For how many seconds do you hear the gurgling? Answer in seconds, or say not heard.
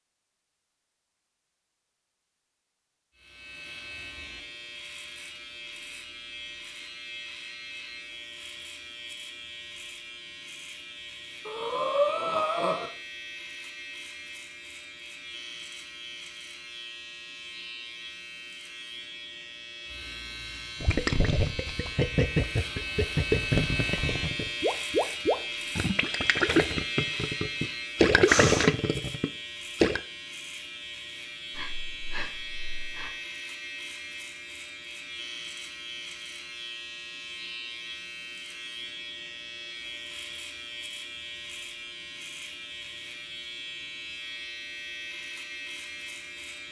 9 s.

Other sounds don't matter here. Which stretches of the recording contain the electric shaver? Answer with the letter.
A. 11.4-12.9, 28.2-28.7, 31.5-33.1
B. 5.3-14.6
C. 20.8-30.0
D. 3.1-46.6
D.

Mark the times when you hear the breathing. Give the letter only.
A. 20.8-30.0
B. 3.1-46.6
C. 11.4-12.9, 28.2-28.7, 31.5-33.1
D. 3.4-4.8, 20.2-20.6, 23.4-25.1
C.